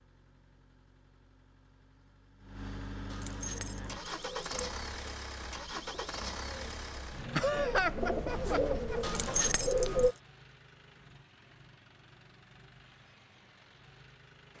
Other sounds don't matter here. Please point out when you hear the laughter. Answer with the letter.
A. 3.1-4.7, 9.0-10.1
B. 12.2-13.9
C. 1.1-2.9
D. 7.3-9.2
D.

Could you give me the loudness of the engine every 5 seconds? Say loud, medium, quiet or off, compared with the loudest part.
loud, loud, quiet.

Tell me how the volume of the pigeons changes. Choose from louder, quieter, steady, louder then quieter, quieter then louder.
quieter then louder.